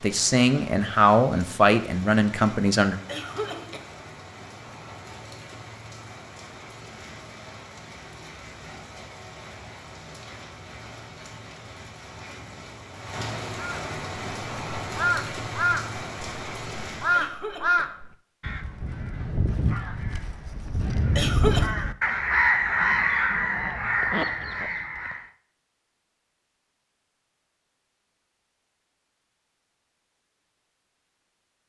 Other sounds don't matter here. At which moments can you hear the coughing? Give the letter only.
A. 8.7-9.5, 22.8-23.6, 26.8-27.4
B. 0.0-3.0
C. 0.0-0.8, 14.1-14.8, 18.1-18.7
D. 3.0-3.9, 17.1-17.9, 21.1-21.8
D.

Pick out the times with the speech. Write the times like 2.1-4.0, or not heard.
0.0-3.0.